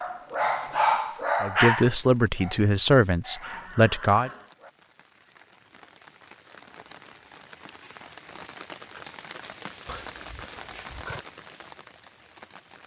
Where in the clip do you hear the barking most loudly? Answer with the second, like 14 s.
1 s.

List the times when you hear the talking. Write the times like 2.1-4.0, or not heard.
1.4-4.3.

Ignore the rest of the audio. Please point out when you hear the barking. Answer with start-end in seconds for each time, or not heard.
0.0-4.7.